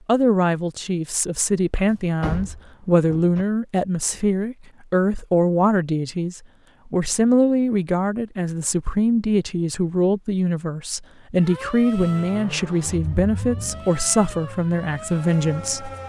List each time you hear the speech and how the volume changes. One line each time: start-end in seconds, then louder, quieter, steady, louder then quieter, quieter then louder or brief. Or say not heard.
0.1-15.9 steady.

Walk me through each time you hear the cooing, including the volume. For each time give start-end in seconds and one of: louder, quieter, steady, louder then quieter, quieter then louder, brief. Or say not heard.
not heard.